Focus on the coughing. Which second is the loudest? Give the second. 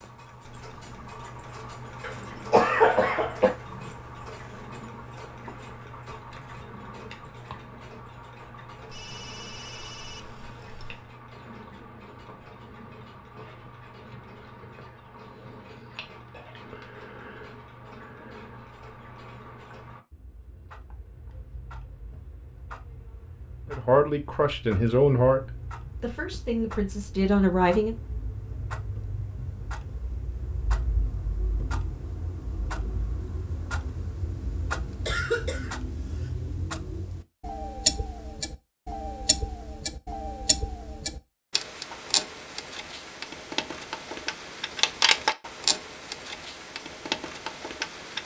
3 s.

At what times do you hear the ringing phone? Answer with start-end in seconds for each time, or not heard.
8.8-11.1.